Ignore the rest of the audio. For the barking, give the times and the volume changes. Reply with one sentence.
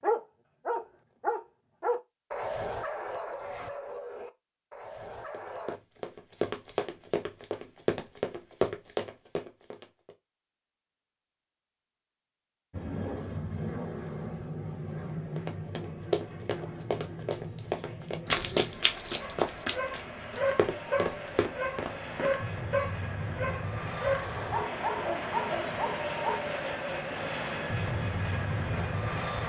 You can hear the barking from 0.0 to 5.8 s, getting quieter; and from 19.2 to 26.4 s, at a steady volume.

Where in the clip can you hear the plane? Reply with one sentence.
You can hear the plane from 12.7 to 29.4 s.